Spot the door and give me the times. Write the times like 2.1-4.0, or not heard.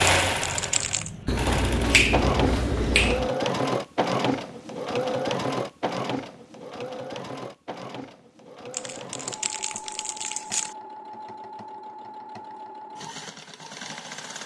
not heard.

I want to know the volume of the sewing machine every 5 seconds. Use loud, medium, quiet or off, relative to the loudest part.
loud, medium, quiet.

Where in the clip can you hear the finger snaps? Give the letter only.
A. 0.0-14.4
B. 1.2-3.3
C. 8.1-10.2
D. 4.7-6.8
B.